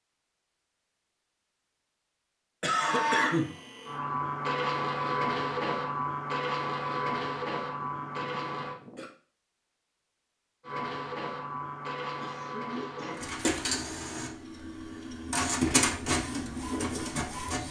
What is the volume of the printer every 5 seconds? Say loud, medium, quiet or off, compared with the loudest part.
loud, loud, medium, loud.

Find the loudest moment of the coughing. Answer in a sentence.
The volume of the coughing peaks at 3 seconds.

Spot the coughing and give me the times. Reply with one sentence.
The coughing can be heard from 2.6 to 3.5 s, from 7.8 to 9.1 s and from 12.2 to 13.2 s.